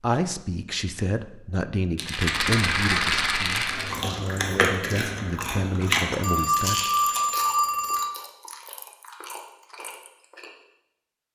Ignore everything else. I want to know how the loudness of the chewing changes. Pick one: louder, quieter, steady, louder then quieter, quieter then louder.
quieter.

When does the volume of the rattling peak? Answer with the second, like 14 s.
3 s.